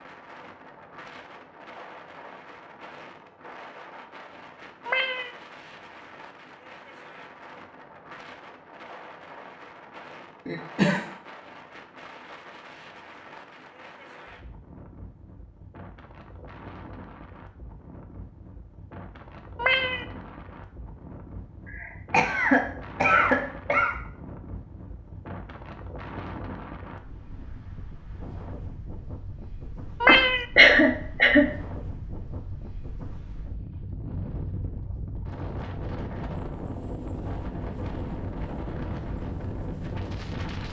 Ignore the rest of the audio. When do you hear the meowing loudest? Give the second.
30 s.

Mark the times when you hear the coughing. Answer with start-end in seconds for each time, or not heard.
10.4-11.1, 21.6-23.9, 30.1-31.4.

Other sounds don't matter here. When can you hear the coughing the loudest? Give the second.
31 s.